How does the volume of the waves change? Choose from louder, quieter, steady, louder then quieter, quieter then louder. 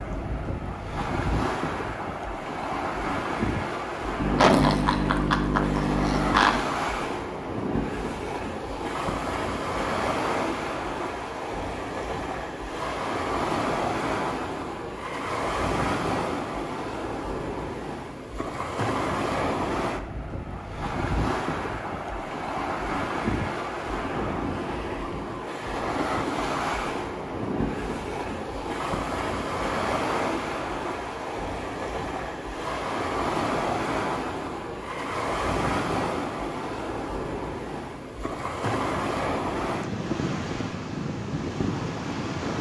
steady.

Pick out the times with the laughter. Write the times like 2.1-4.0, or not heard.
4.2-6.7.